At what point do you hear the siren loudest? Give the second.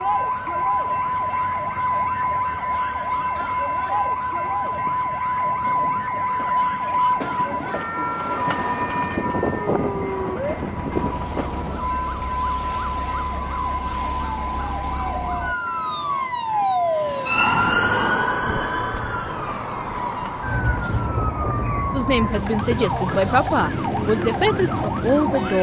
18 s.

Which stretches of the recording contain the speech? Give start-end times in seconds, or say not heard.
21.9-25.5.